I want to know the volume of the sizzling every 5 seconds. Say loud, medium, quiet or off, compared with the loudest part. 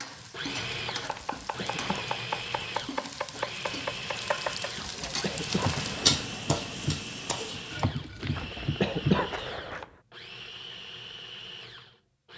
medium, loud, off.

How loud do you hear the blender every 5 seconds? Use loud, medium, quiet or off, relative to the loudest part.
loud, loud, medium.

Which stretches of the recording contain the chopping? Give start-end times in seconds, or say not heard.
0.8-9.8.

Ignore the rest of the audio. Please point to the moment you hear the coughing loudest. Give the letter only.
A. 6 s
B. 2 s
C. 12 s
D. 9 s
D.